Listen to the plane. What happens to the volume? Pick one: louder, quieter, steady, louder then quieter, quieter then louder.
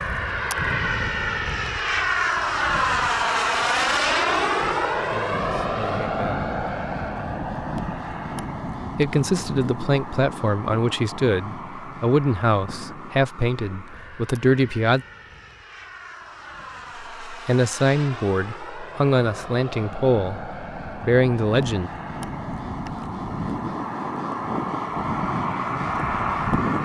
quieter then louder.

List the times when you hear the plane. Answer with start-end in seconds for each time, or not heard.
0.0-26.7.